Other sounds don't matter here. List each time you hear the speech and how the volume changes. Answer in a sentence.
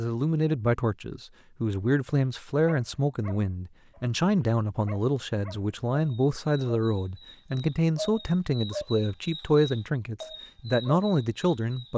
The speech can be heard from 0.0 to 11.9 s, at a steady volume.